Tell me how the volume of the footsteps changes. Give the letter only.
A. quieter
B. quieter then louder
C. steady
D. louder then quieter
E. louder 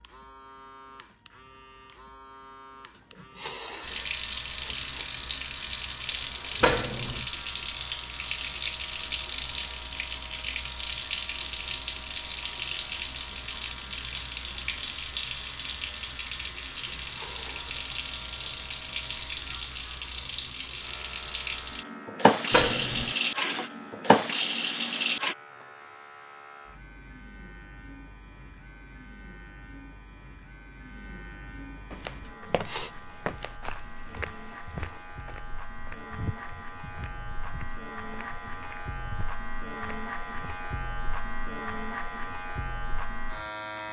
A.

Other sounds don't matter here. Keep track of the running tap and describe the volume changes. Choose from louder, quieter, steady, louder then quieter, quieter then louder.
steady.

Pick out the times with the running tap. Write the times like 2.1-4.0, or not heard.
3.8-25.4.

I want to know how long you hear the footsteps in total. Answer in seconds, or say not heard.
9 s.